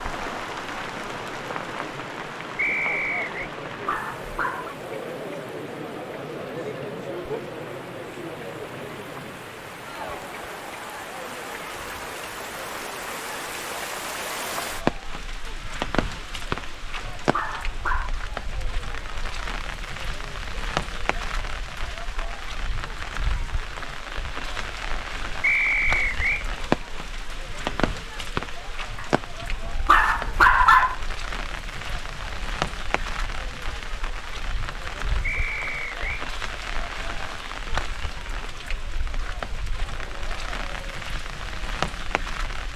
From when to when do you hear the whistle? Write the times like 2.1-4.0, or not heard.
2.5-3.3, 25.4-26.4, 35.2-36.2.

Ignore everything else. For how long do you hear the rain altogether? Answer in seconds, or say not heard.
43 s.